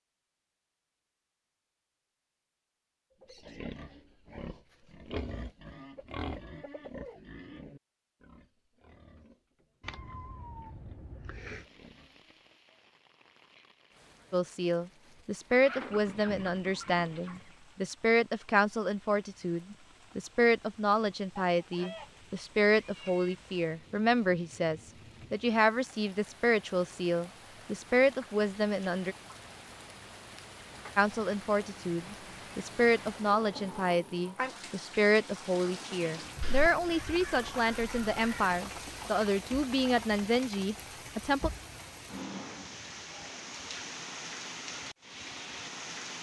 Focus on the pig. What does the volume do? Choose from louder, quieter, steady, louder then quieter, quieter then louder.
quieter.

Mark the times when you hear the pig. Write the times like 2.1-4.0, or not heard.
3.2-12.3.